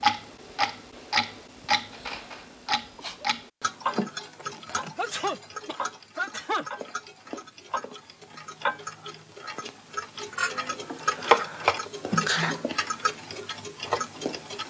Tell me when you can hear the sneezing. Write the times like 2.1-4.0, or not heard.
1.9-3.2, 5.0-6.7, 11.1-12.7.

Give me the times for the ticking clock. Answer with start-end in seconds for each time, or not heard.
0.0-14.6.